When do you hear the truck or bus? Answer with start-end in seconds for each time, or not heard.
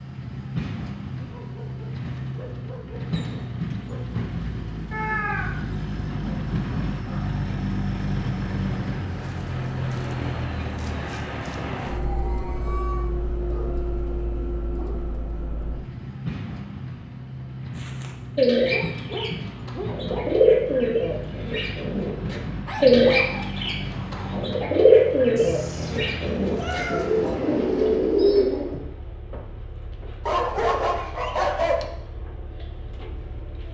0.0-33.6.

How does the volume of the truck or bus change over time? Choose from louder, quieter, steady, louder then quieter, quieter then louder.
quieter.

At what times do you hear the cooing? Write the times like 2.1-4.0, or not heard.
17.8-28.8.